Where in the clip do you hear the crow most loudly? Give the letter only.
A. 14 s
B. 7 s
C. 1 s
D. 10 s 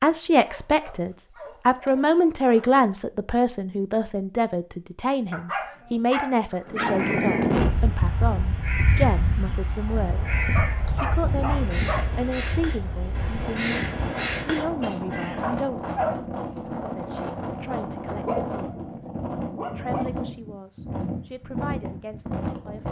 A.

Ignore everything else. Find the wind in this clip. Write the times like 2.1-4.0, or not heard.
6.7-22.8.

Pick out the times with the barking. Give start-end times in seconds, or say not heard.
0.5-2.9, 5.3-7.1, 10.6-12.1, 15.4-16.6, 18.2-20.1.